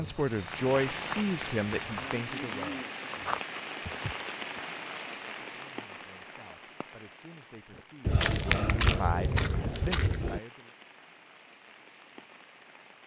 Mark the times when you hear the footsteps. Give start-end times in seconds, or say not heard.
0.0-4.6, 8.1-10.4.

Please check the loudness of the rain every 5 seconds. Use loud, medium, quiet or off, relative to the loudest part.
loud, medium, quiet.